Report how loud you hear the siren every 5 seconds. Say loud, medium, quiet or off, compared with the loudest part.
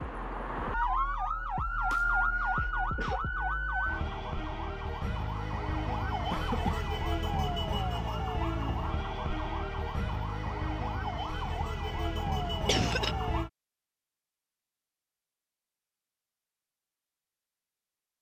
loud, loud, loud, off.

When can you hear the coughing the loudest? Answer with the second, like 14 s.
13 s.